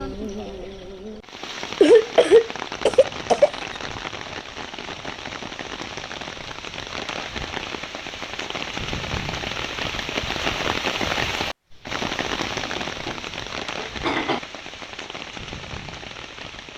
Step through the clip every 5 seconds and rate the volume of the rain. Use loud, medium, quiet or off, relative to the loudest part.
medium, loud, loud, medium.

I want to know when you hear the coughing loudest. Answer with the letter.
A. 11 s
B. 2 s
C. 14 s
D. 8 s
B.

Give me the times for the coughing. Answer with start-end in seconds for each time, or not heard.
1.8-3.6, 12.6-14.4.